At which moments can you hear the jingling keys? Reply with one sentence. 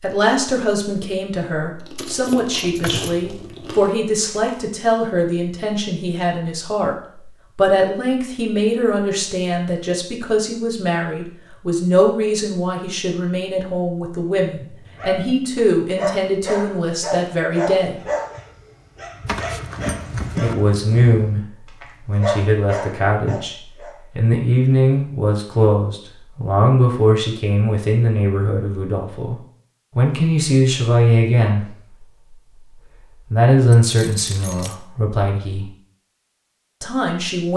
You can hear the jingling keys from 1.9 to 3.1 s, from 19.2 to 20.6 s and from 33.8 to 34.8 s.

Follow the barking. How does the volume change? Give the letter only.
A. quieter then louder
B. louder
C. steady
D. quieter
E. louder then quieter
A.